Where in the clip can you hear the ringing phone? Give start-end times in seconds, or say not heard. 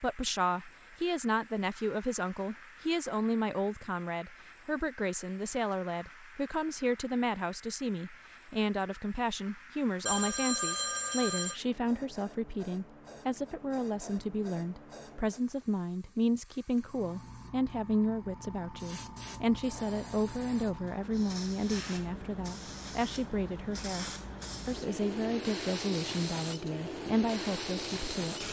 10.1-11.6.